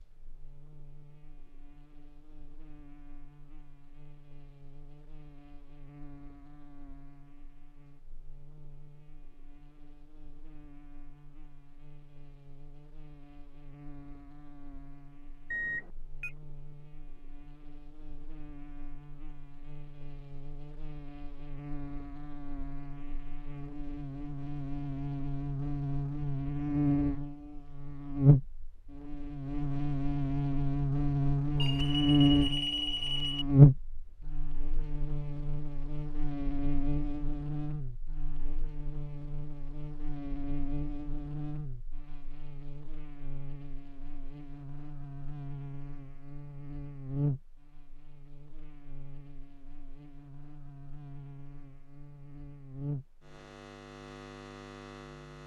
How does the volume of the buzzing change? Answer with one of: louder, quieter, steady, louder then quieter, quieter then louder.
louder then quieter.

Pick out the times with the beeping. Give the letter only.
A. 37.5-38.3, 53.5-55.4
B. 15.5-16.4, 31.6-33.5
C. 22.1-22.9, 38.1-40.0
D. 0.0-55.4
B.